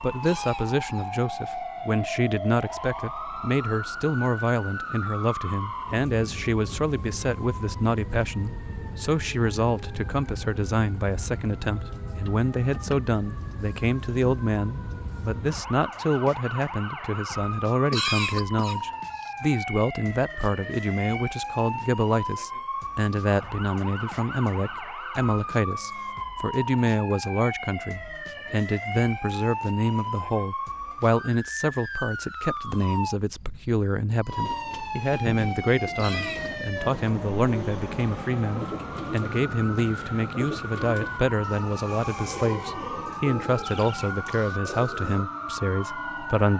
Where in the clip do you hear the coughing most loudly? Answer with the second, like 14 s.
18 s.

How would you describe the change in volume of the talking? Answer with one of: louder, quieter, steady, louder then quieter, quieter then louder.
steady.